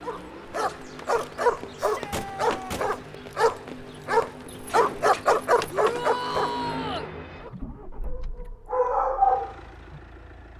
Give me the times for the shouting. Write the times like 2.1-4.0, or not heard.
1.8-2.8, 5.7-7.1.